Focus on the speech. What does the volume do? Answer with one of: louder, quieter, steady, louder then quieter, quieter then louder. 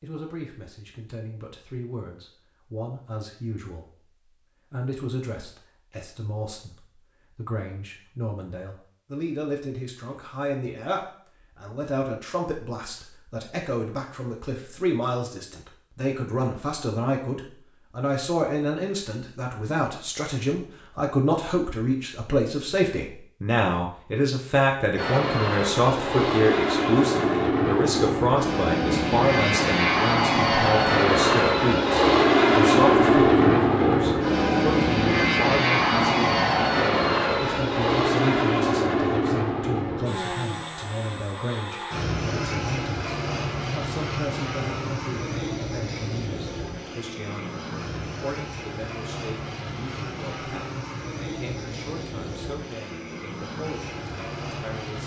louder then quieter.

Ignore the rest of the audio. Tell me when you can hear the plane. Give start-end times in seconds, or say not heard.
24.9-55.0.